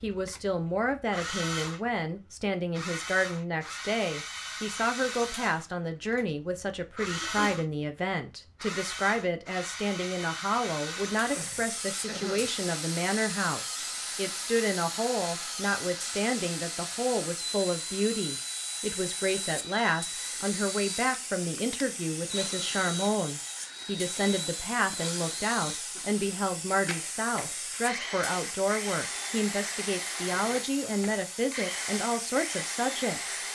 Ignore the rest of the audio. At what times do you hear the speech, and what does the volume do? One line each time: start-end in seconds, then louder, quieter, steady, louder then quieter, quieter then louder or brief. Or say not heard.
0.0-33.4 steady.